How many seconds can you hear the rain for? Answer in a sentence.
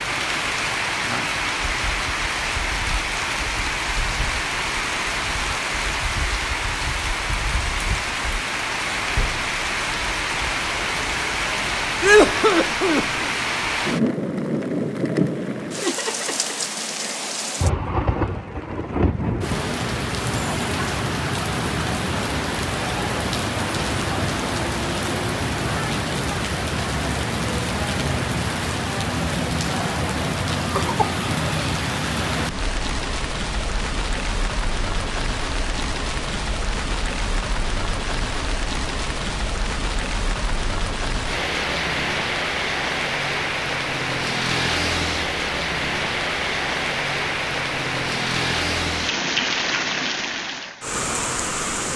You can hear the rain for 52 seconds altogether.